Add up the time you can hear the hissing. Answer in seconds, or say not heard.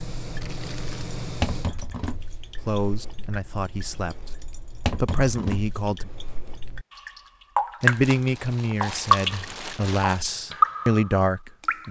2 s.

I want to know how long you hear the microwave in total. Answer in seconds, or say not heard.
not heard.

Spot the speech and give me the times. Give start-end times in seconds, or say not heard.
2.6-4.2, 5.0-6.1, 7.8-11.8.